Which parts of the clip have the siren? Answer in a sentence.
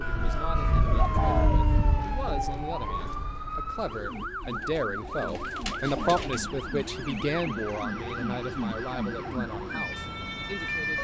The siren can be heard from 0.2 to 10.9 s.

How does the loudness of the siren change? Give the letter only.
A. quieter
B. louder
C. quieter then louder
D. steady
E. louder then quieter
D.